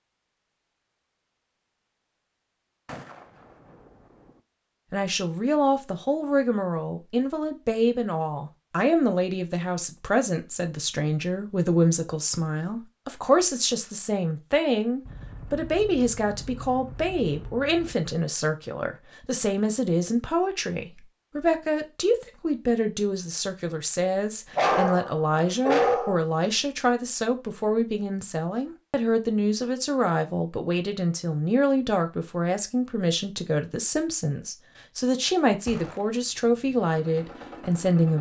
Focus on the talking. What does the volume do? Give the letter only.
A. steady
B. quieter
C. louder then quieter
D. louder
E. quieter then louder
A.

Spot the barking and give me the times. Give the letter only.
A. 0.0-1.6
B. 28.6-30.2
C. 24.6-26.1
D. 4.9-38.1
C.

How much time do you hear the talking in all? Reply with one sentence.
You can hear the talking for 33 seconds altogether.